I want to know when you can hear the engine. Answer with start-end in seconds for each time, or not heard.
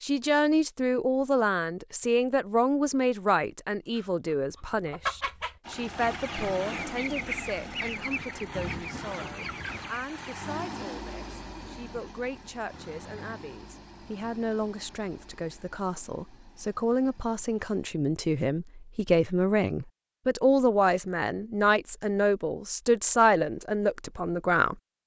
5.6-17.9.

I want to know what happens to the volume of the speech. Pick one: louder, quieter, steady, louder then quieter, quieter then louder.
quieter then louder.